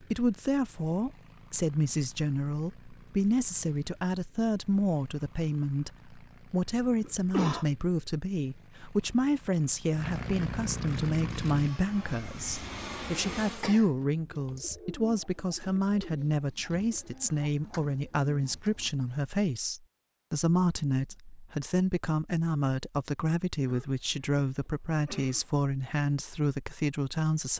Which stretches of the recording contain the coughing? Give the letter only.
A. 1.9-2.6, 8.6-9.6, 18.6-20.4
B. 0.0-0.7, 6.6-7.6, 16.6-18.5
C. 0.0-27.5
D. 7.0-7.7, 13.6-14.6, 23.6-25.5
D.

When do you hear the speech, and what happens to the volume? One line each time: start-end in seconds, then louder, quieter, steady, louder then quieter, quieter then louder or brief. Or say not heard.
0.0-27.5 steady.